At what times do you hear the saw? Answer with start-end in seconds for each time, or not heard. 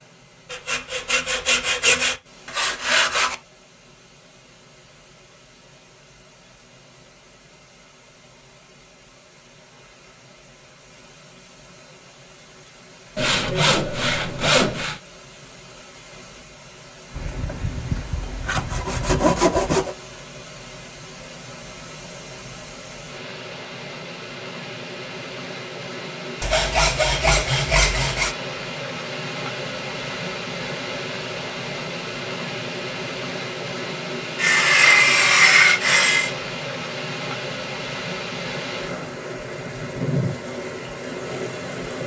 0.5-3.4, 13.2-15.0, 17.1-19.9, 26.4-28.4, 34.4-36.4.